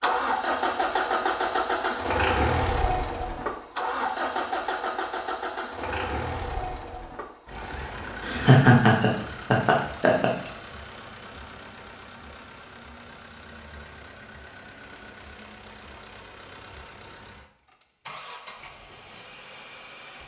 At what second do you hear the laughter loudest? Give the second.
9 s.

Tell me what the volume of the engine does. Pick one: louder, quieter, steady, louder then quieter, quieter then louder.
quieter.